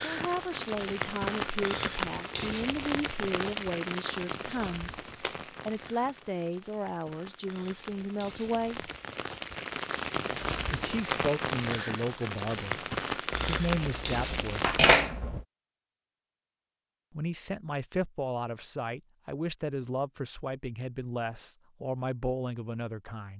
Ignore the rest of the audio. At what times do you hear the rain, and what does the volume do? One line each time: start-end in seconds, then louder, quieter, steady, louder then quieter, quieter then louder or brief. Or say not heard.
0.0-14.9 quieter then louder.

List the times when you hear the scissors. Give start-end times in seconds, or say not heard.
4.9-5.3, 13.3-15.4.